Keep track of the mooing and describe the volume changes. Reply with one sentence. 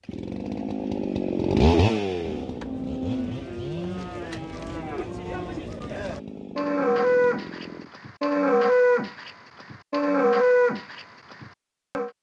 The loudness of the mooing goes up.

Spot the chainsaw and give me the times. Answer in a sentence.
The chainsaw can be heard from 0.0 to 7.9 s.